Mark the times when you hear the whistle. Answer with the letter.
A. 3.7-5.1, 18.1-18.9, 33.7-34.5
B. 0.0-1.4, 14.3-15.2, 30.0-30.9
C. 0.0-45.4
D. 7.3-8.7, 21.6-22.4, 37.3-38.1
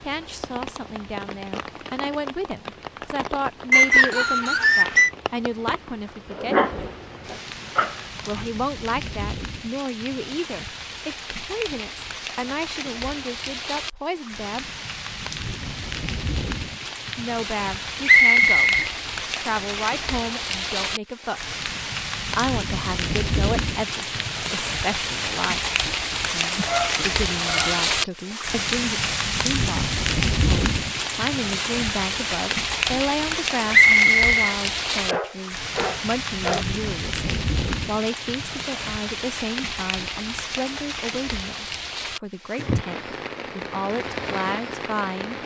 A.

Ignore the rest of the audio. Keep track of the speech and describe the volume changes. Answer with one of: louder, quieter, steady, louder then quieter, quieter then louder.
steady.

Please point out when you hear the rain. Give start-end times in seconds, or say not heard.
0.0-45.4.